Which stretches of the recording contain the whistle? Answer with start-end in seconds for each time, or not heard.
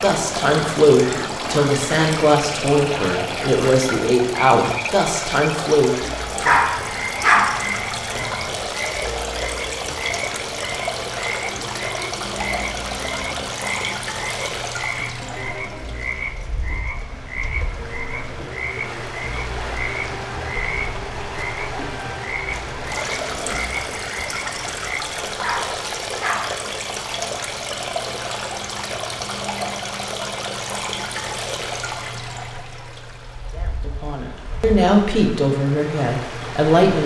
not heard.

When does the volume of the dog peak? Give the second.
7 s.